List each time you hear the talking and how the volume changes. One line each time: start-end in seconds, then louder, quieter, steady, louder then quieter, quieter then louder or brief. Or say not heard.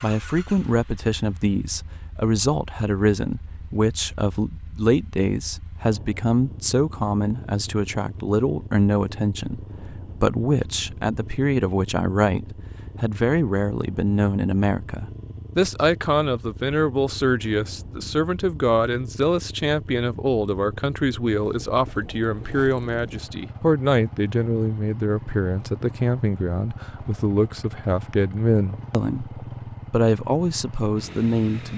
0.0-31.7 steady.